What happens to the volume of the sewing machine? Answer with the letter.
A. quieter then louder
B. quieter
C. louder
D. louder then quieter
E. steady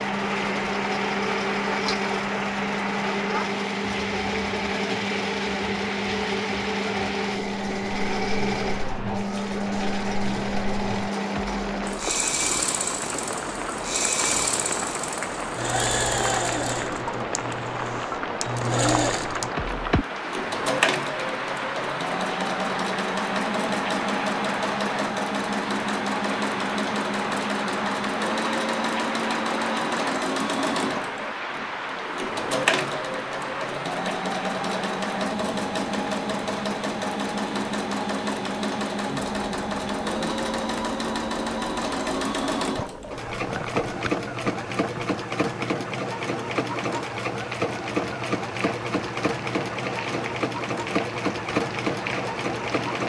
E.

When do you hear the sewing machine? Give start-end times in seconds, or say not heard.
0.0-53.0.